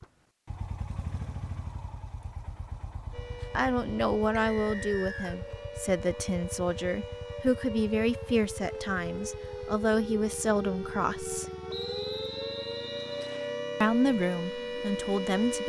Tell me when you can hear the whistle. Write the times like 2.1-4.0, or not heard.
4.3-5.3, 11.7-13.6.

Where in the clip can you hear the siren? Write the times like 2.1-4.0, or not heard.
3.1-15.6.